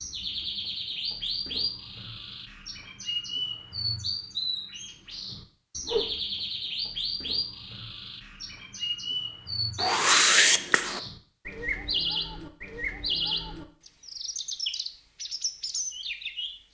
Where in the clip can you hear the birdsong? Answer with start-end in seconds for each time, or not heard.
0.0-16.6.